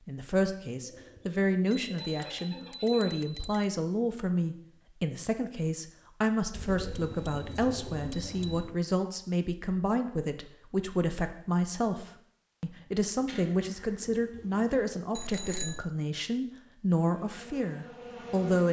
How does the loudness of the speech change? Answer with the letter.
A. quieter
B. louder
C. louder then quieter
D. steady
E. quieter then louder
D.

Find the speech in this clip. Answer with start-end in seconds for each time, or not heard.
0.1-18.6.